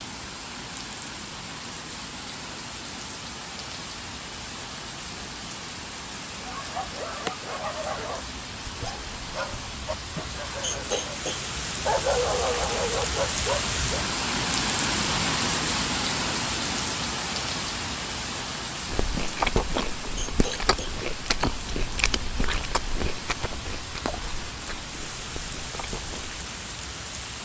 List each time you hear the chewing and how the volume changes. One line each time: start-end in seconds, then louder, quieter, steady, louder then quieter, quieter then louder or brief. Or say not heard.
18.9-26.4 quieter.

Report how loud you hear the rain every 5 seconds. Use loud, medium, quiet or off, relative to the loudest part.
medium, medium, loud, loud, medium, medium.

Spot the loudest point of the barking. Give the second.
12 s.